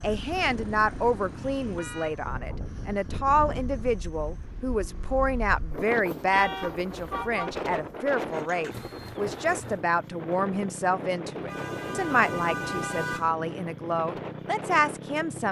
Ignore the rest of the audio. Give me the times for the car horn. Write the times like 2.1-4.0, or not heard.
0.4-2.1, 6.3-7.6, 11.4-13.3.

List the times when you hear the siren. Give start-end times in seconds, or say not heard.
not heard.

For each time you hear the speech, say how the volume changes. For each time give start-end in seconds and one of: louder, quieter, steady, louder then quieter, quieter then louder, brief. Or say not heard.
0.0-15.4 steady.